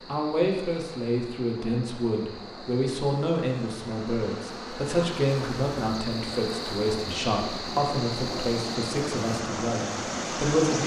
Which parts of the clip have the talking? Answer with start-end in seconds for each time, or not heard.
0.1-10.8.